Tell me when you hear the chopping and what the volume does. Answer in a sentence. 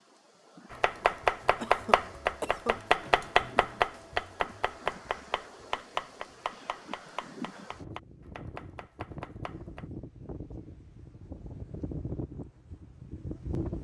The chopping can be heard from 0.7 to 9.8 s, getting quieter.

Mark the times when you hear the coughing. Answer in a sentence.
You can hear the coughing from 1.6 to 2.8 s.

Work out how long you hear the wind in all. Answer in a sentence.
You can hear the wind for 14 seconds altogether.